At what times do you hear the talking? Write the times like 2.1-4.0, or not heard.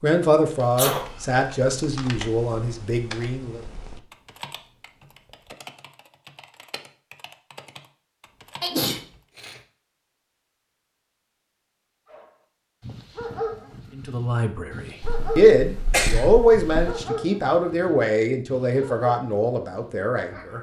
0.0-3.6, 13.9-20.5.